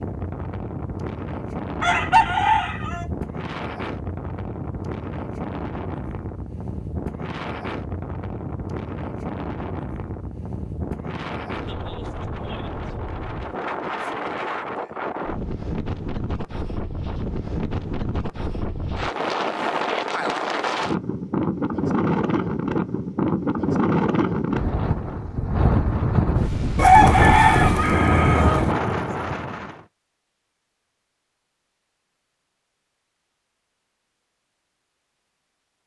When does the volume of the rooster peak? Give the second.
27 s.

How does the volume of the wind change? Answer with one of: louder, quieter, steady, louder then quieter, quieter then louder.
louder.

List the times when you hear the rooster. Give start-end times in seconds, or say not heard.
1.8-3.0, 26.8-28.8.